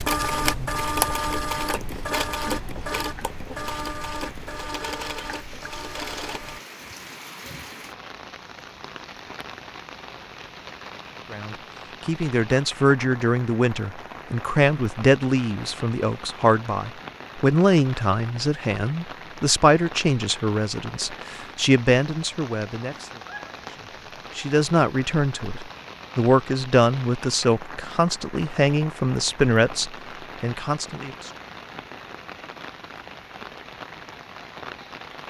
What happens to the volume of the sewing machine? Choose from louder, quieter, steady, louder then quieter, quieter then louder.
quieter.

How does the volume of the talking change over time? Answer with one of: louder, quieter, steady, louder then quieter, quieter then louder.
steady.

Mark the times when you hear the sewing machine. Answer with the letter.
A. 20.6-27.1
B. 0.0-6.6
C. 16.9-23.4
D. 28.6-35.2
B.